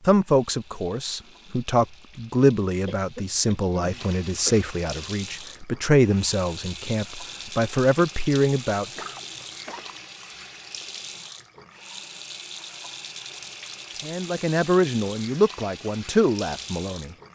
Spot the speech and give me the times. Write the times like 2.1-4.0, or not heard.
0.1-8.8, 14.0-17.3.